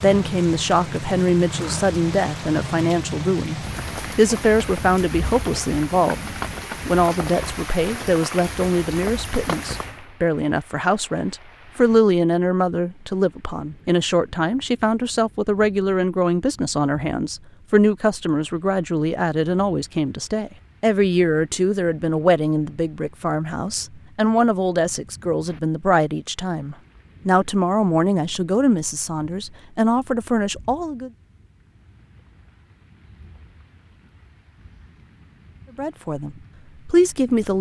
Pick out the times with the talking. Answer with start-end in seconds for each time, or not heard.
0.0-6.2, 6.8-31.1, 35.8-37.5.